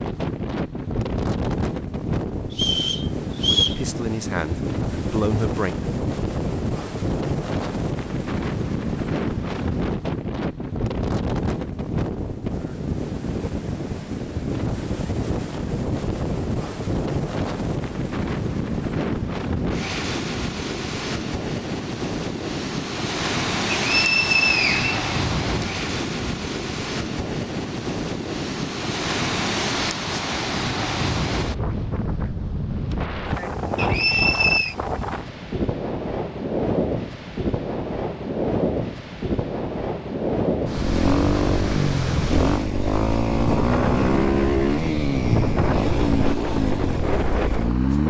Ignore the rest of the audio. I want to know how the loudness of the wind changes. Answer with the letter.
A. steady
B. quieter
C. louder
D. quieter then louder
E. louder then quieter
A.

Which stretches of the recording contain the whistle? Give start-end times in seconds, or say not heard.
2.5-3.8, 23.8-25.6, 33.8-34.8.